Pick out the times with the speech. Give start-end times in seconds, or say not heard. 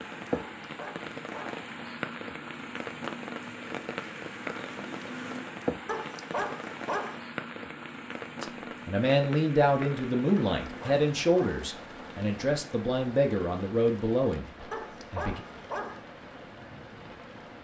8.4-15.4.